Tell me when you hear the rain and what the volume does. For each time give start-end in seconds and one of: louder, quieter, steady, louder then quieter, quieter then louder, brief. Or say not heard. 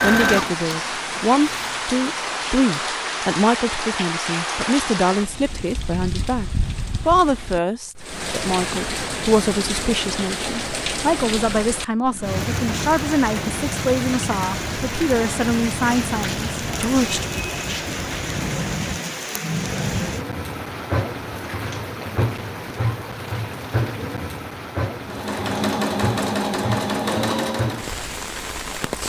0.2-29.0 steady.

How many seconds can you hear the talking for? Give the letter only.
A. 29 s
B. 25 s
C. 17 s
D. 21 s
C.